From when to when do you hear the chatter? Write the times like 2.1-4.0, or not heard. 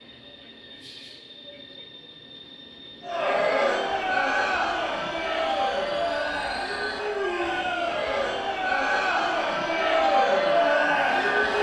3.0-11.5.